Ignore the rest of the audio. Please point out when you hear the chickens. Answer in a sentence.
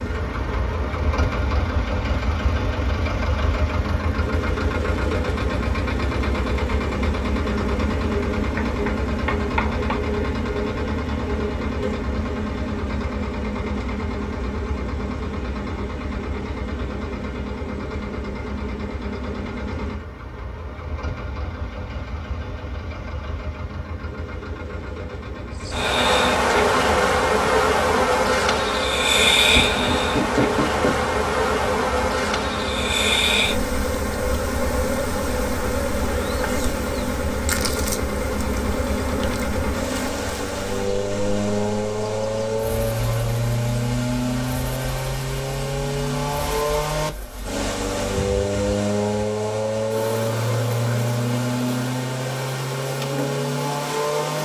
You can't hear the chickens here.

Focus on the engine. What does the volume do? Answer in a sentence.
The loudness of the engine goes down, then up.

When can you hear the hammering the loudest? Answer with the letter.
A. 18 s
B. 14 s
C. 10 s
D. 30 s
D.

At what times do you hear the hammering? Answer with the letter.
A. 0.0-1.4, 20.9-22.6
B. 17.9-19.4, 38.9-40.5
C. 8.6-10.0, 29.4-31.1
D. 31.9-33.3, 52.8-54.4
C.